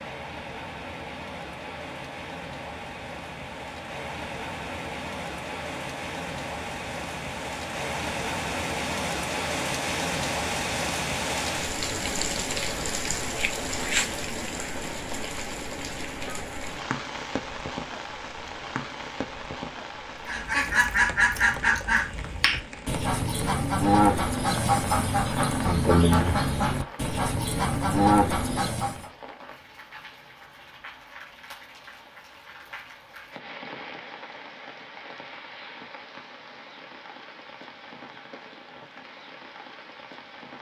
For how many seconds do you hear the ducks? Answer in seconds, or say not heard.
9 s.